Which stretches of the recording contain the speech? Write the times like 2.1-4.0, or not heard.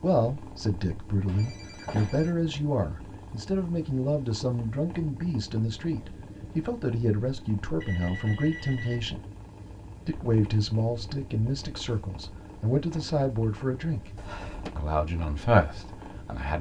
0.0-9.2, 10.1-14.1, 14.8-16.5.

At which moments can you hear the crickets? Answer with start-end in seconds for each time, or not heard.
not heard.